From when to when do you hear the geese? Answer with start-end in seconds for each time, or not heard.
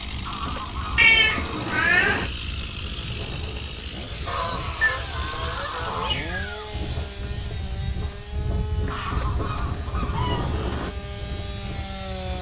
0.2-2.2, 4.2-6.1, 8.9-10.9.